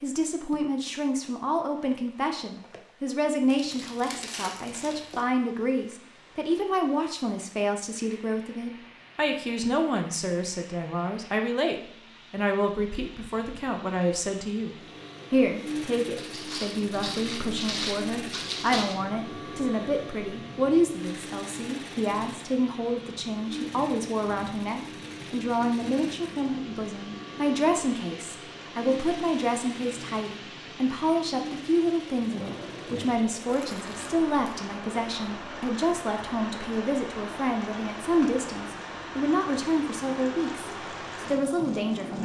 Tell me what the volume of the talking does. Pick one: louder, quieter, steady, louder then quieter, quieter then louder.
steady.